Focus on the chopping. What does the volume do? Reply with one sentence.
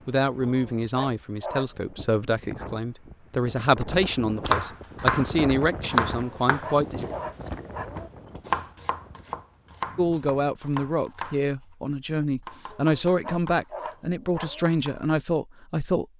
The loudness of the chopping goes down.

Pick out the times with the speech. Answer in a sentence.
You can hear the speech from 0.1 to 7.0 s and from 9.9 to 16.1 s.